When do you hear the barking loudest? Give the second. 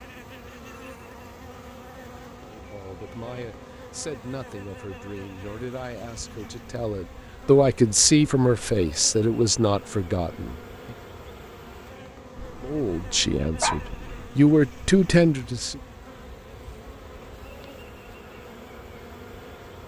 14 s.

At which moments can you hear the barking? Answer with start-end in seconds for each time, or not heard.
12.3-14.3.